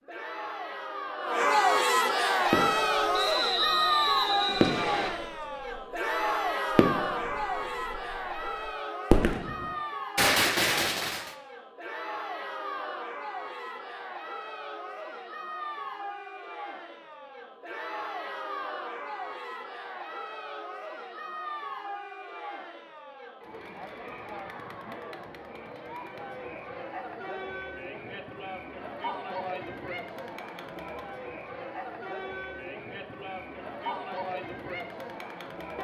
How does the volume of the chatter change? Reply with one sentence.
The loudness of the chatter goes down.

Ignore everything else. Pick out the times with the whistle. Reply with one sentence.
The whistle can be heard from 3.1 to 5.1 s.